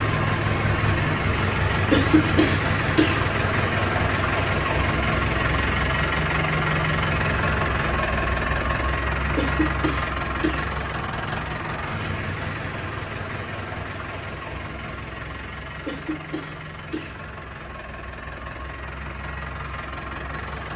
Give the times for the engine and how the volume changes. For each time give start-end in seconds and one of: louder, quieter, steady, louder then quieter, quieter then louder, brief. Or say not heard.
0.0-20.7 quieter.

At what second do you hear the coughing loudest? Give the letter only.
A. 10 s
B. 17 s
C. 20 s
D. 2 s
D.